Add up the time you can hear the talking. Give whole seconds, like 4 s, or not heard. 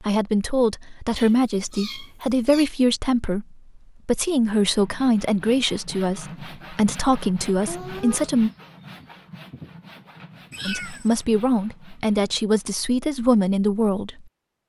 12 s.